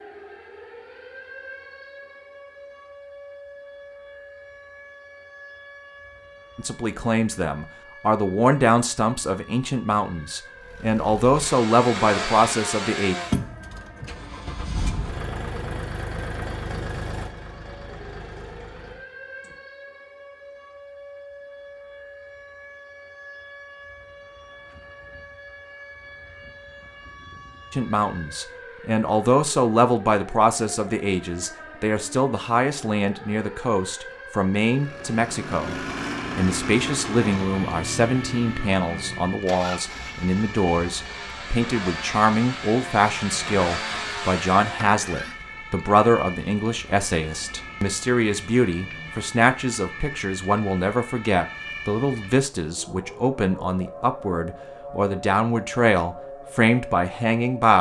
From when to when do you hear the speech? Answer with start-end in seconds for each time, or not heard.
6.5-13.2, 27.7-57.7.